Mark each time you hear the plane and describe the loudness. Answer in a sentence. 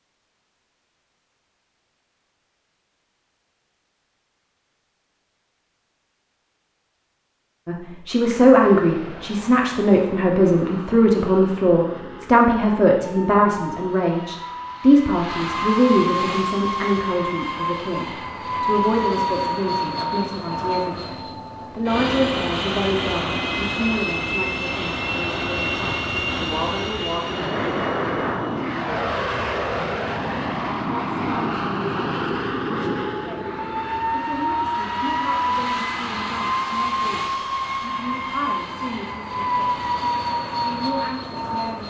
You can hear the plane from 8.6 to 41.8 s, getting louder.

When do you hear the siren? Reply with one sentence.
You can't hear the siren here.